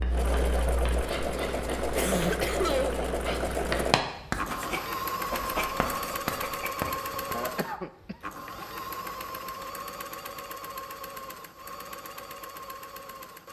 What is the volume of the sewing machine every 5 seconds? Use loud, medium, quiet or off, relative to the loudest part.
loud, loud, medium.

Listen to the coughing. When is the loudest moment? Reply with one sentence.
The loudest moment of the coughing is at 3 seconds.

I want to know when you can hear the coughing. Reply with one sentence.
You can hear the coughing from 1.9 to 3.0 s and from 7.3 to 8.2 s.